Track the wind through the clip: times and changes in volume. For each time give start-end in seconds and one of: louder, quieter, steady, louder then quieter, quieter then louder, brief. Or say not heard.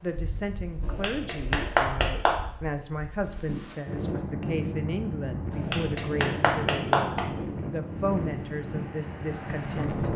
0.0-10.1 louder.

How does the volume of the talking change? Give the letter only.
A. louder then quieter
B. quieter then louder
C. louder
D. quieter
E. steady
E.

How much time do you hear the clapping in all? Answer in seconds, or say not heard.
3 s.